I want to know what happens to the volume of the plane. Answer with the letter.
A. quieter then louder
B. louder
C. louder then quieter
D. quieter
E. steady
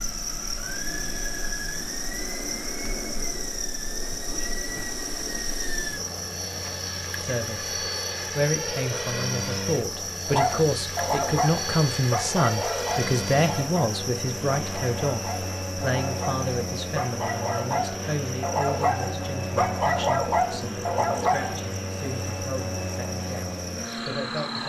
E.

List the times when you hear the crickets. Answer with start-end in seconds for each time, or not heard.
0.0-24.6.